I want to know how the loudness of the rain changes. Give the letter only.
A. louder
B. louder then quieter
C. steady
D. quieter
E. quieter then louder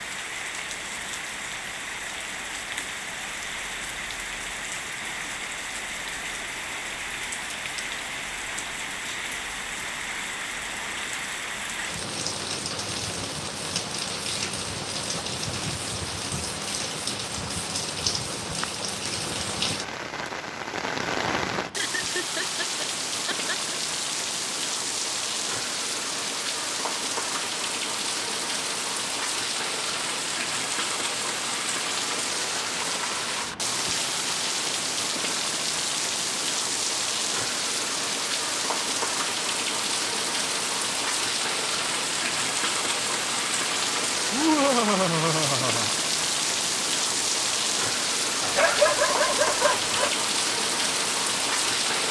A.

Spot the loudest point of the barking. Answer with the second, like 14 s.
49 s.